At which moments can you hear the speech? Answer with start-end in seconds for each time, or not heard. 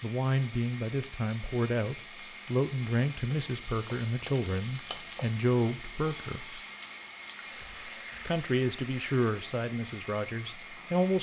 0.0-6.6, 8.2-11.1.